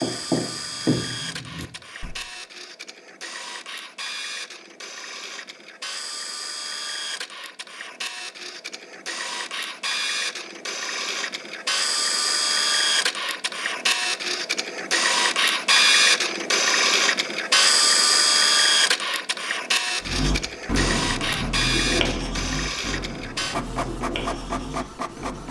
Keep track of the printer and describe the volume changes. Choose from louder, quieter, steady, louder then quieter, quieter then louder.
louder then quieter.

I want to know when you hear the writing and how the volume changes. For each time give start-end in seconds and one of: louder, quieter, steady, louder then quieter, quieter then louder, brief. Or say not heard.
0.0-2.1 brief
20.0-25.4 quieter.